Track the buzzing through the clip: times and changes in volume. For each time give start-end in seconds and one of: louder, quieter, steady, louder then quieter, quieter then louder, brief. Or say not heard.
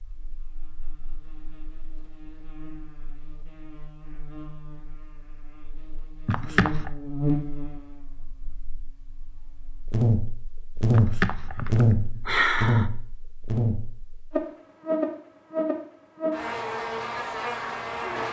0.0-18.2 louder.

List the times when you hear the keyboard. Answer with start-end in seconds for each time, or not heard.
not heard.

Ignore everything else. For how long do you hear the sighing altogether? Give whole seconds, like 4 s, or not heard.
3 s.